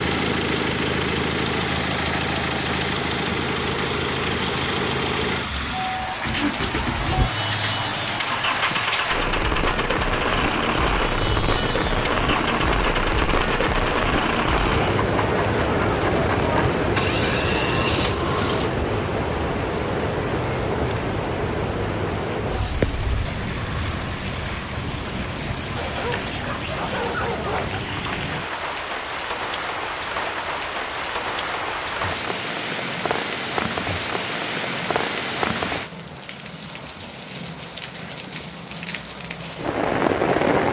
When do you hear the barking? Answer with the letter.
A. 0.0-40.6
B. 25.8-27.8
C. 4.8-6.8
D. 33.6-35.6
B.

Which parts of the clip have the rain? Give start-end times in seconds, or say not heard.
0.0-40.6.